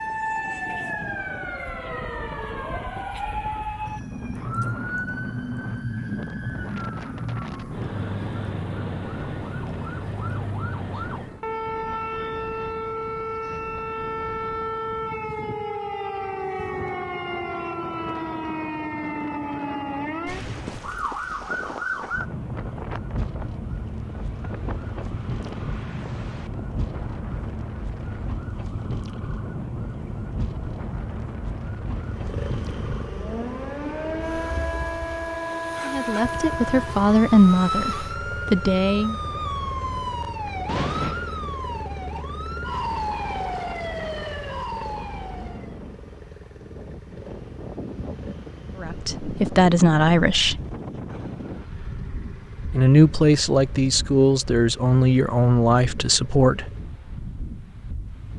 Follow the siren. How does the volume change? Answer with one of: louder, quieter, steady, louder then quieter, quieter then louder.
steady.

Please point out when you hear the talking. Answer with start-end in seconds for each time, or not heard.
35.9-39.1, 48.8-50.6, 52.7-56.7.